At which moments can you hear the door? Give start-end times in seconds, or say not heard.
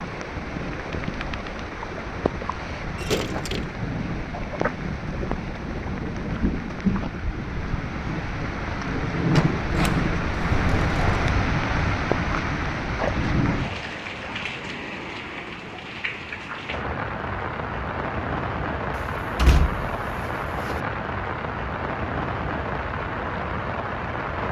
3.0-3.8, 9.3-11.4, 18.9-20.8.